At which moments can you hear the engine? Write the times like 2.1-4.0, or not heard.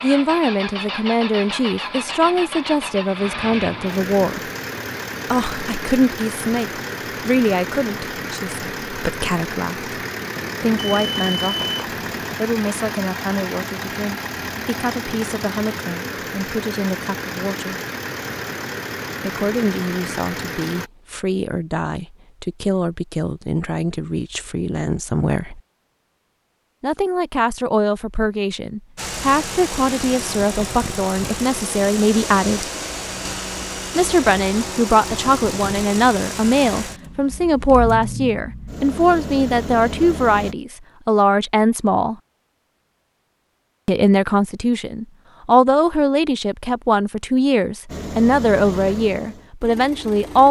0.0-20.9, 28.9-40.5, 47.9-50.4.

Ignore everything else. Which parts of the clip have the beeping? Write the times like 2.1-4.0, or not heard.
10.3-12.3.